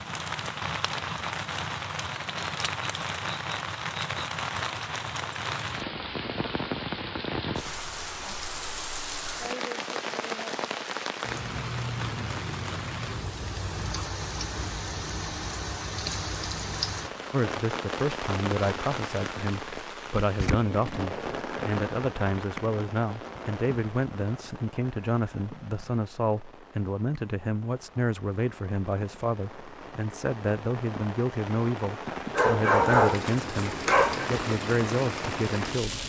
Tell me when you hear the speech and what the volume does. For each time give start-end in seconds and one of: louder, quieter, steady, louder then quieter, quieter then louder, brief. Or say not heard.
17.3-36.0 steady.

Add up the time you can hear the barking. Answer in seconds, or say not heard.
2 s.